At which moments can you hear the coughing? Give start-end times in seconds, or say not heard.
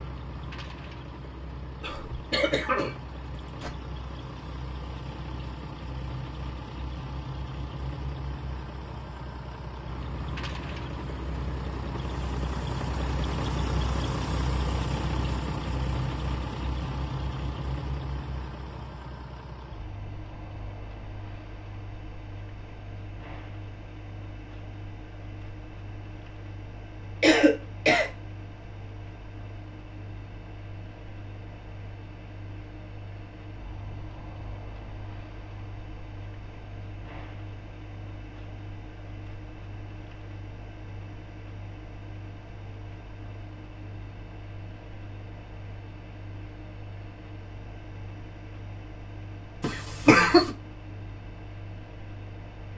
1.8-3.7, 27.2-28.1, 49.6-50.5.